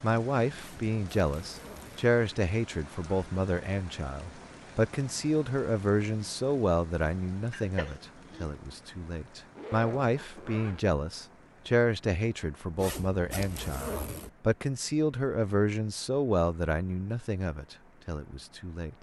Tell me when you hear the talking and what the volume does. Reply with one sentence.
You can hear the talking from 0.0 to 18.9 s, at a steady volume.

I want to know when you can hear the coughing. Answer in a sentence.
The coughing can be heard from 7.5 to 8.5 s.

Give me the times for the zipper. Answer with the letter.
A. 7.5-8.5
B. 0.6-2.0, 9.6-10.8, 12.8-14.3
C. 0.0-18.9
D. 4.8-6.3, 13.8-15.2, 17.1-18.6
B.